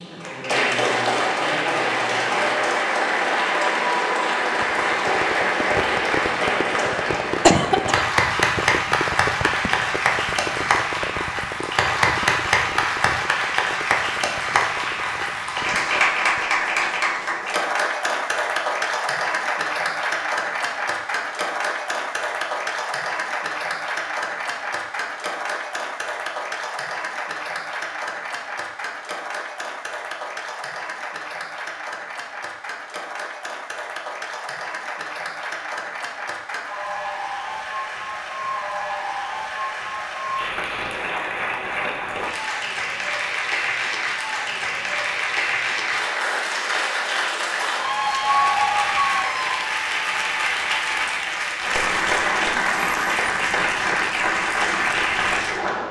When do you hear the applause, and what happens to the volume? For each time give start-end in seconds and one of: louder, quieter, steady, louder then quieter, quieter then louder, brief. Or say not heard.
0.0-55.8 quieter then louder.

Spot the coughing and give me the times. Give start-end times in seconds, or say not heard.
7.4-8.1.